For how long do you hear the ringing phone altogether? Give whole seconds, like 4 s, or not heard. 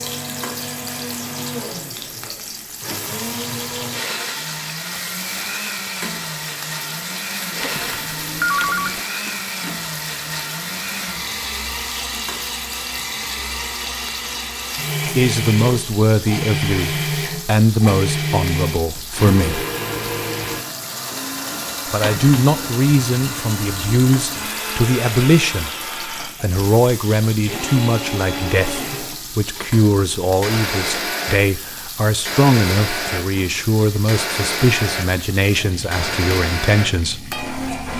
2 s.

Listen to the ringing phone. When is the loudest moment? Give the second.
9 s.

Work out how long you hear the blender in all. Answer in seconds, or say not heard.
38 s.